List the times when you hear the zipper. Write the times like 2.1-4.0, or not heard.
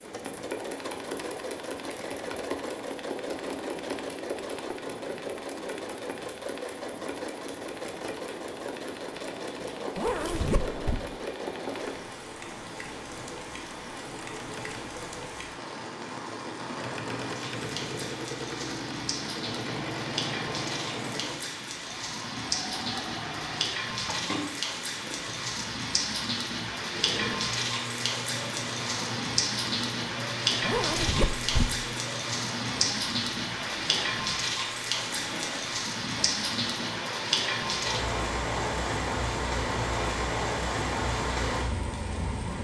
9.9-11.0, 30.6-31.7.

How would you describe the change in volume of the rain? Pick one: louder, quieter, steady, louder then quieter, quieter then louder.
louder.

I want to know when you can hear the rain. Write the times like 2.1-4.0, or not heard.
0.0-42.5.